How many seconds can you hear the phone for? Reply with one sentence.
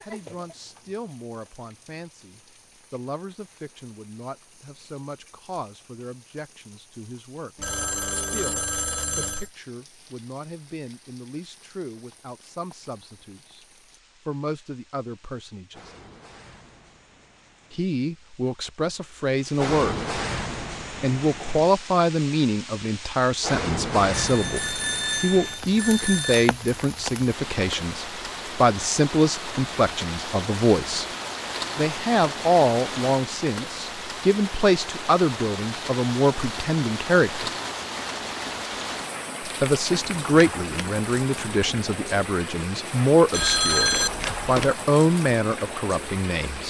The phone can be heard for 6 seconds in total.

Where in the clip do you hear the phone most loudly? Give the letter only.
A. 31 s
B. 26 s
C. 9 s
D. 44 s
D.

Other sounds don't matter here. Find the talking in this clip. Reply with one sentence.
You can hear the talking from 0.0 to 15.9 s, from 17.7 to 20.0 s, from 21.0 to 31.1 s, from 31.8 to 37.5 s and from 39.5 to 46.6 s.